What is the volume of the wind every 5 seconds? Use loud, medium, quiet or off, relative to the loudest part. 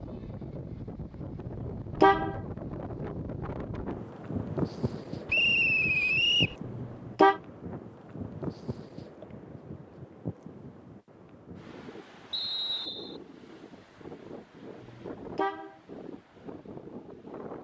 loud, loud, medium, medium.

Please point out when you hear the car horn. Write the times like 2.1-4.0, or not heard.
1.4-2.4, 6.7-7.4, 14.8-15.8.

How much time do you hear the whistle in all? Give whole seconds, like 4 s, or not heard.
2 s.